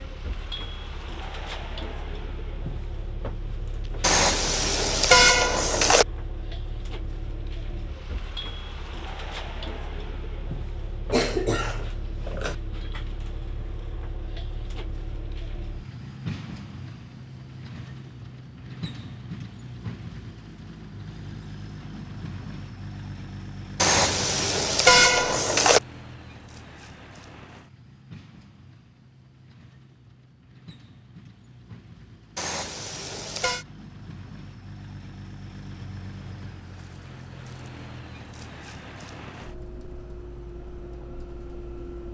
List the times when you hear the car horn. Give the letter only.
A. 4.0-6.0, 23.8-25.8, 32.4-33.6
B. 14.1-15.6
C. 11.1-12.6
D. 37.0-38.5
A.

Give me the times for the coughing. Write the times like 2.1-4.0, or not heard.
11.1-12.6.